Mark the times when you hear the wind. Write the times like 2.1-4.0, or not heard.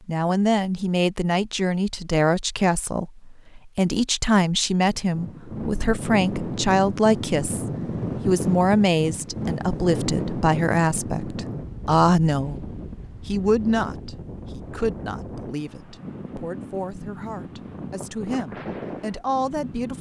5.0-19.9.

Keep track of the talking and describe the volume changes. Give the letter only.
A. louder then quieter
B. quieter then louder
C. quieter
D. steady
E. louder
C.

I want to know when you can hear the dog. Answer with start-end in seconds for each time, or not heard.
not heard.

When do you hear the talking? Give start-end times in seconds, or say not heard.
0.1-7.7, 8.2-12.6, 13.2-19.9.